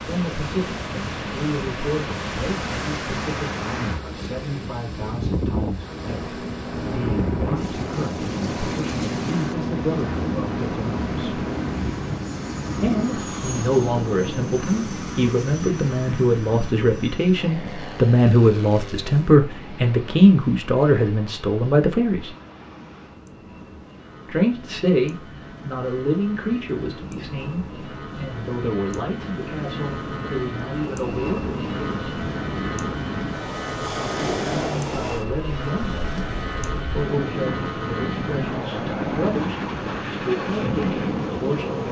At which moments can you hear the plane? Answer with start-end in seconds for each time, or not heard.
5.8-41.8.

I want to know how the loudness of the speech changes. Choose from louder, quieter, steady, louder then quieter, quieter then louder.
louder then quieter.